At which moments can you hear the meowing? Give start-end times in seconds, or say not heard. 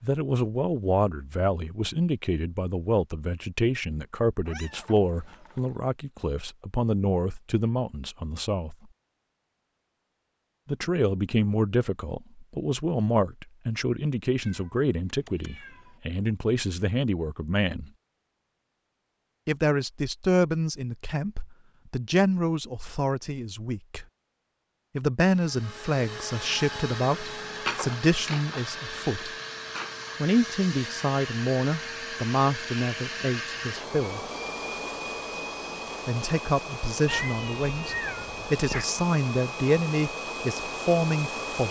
4.5-5.8, 14.3-16.0, 37.0-38.9.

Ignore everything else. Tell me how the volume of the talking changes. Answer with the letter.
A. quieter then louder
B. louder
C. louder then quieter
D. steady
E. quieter
D.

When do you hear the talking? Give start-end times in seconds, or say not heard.
0.0-8.8, 10.7-17.9, 19.4-24.1, 24.9-29.3, 30.2-34.2, 36.0-41.6.